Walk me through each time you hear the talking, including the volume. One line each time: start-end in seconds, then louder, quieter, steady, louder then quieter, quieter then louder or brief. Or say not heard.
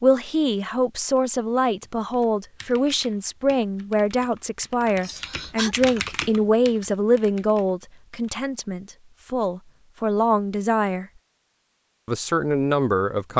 0.0-11.1 steady
12.1-13.3 brief.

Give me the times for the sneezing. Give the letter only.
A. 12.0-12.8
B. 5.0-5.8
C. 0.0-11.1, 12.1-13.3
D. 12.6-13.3
B.